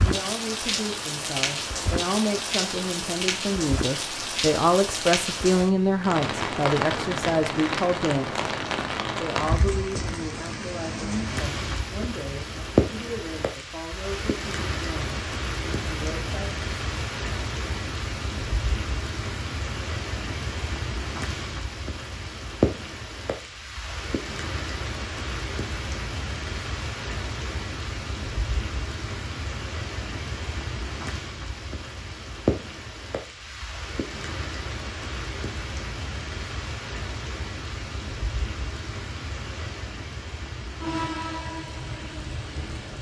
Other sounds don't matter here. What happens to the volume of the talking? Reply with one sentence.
The loudness of the talking goes up, then down.